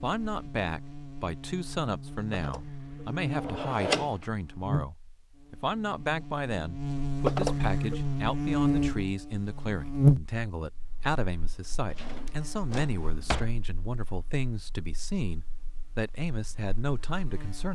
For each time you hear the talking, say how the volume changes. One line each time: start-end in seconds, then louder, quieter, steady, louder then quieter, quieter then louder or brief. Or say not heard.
0.0-17.6 steady.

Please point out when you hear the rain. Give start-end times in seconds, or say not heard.
not heard.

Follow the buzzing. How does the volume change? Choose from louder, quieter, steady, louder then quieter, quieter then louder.
louder then quieter.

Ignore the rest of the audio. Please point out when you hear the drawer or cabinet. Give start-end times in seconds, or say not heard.
2.4-4.2, 7.2-8.0, 11.9-13.6.